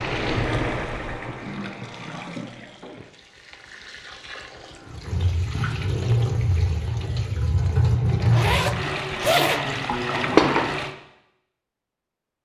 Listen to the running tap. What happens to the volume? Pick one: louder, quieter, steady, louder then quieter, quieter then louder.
quieter then louder.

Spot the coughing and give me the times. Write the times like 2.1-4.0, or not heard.
not heard.